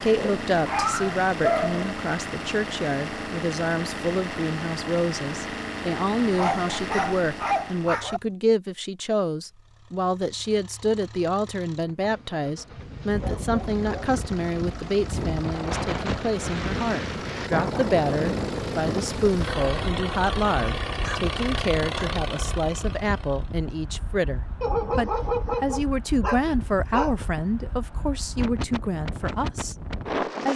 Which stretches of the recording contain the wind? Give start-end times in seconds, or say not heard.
13.1-30.5.